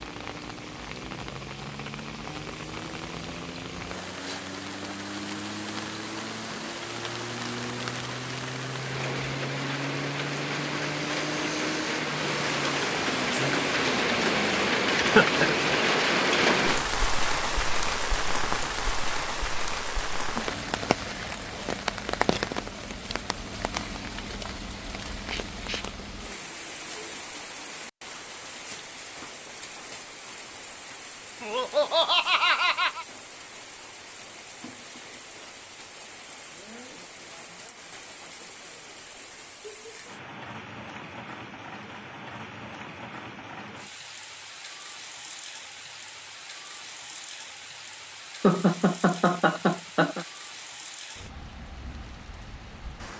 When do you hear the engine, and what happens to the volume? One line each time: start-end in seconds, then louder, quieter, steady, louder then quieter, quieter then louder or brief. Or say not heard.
0.0-14.8 louder.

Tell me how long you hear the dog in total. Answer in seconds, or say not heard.
not heard.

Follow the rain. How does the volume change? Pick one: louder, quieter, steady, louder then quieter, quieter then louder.
louder then quieter.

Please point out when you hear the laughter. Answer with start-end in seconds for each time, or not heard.
14.9-15.5, 31.4-33.0, 48.4-50.2.